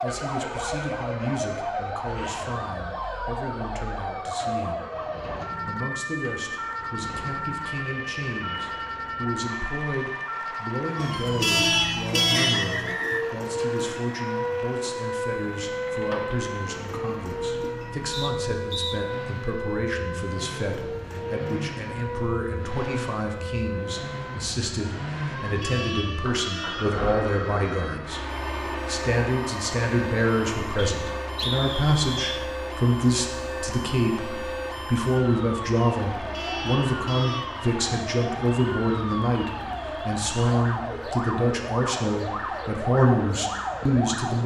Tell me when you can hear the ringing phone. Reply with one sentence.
The ringing phone can't be heard in this clip.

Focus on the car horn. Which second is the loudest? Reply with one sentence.
The volume of the car horn peaks at 12 seconds.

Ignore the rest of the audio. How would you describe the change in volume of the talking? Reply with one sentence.
The volume of the talking goes up.